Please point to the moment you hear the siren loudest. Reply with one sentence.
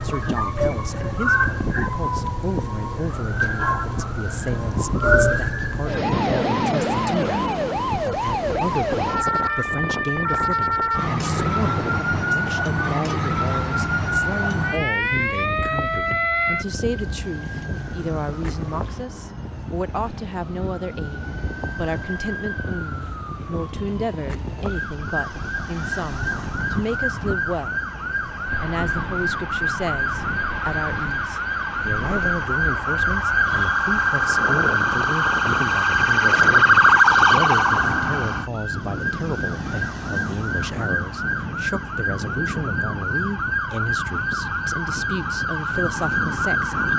The loudest moment of the siren is at 37 seconds.